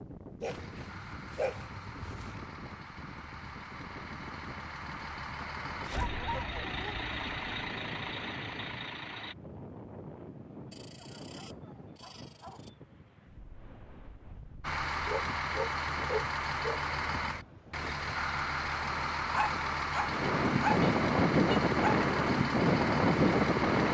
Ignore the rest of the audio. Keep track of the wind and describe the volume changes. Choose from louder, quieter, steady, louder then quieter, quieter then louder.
louder.